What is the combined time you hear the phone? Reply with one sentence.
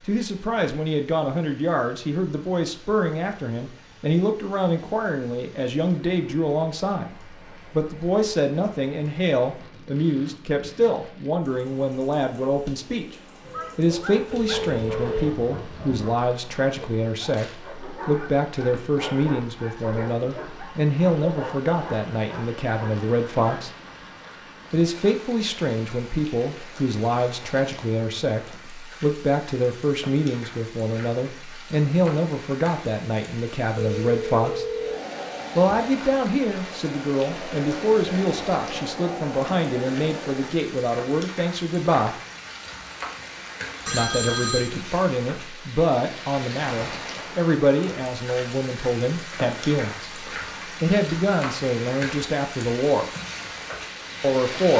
You can hear the phone for 3 seconds altogether.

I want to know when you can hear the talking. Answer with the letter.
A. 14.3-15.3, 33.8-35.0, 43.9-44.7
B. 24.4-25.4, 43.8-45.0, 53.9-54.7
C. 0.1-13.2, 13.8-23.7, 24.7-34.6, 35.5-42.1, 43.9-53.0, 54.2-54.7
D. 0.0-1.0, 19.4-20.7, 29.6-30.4
C.